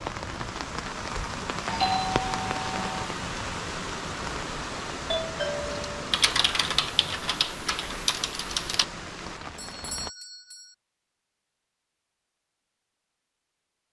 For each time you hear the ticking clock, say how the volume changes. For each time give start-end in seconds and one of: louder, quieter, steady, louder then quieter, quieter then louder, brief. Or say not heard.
not heard.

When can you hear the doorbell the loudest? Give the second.
2 s.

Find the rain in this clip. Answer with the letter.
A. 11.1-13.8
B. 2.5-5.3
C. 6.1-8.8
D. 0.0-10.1
D.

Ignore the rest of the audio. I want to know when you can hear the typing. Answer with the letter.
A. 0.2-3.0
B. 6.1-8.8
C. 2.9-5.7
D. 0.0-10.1
B.